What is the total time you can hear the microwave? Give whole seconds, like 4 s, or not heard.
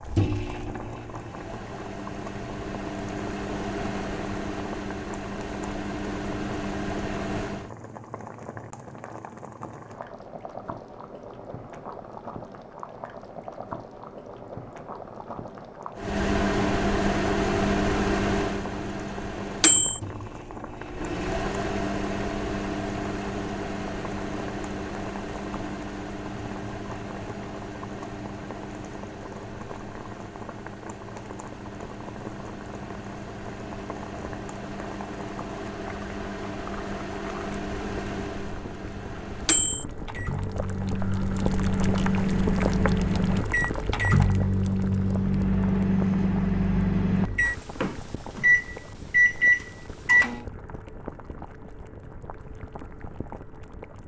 42 s.